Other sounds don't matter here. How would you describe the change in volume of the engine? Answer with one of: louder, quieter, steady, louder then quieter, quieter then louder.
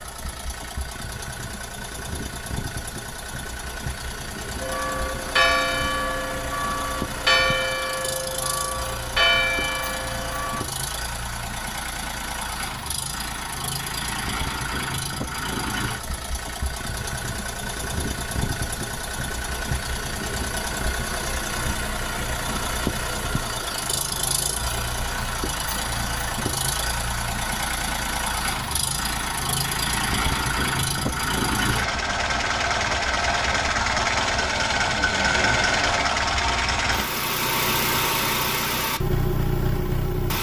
louder.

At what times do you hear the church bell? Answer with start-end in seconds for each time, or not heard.
4.6-10.7.